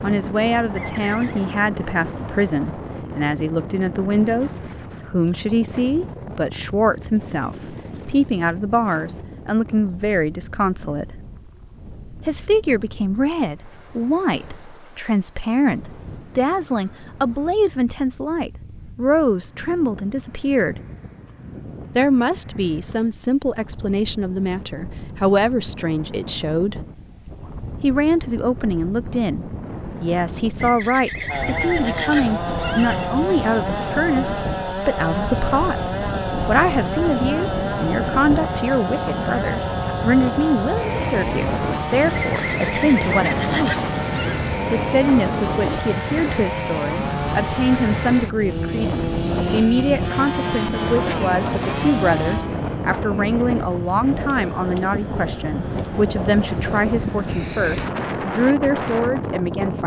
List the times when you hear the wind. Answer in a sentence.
The wind can be heard from 0.0 to 59.8 s.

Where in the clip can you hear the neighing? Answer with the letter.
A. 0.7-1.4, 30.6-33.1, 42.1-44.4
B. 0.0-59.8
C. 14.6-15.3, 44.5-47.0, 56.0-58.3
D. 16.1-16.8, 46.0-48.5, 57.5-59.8
A.